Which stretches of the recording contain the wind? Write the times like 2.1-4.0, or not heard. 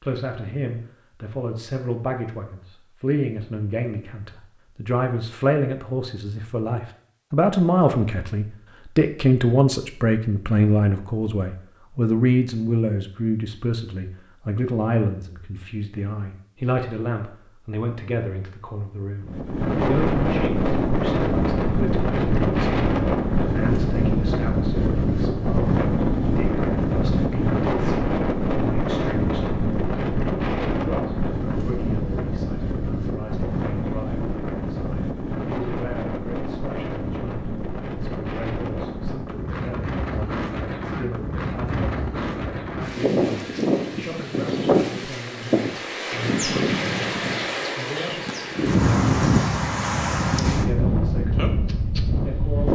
19.2-52.7.